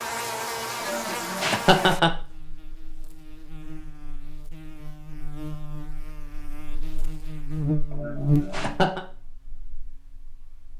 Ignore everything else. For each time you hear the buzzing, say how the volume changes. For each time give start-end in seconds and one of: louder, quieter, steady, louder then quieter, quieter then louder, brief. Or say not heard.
0.0-10.7 quieter then louder.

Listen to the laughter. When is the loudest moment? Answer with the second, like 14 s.
2 s.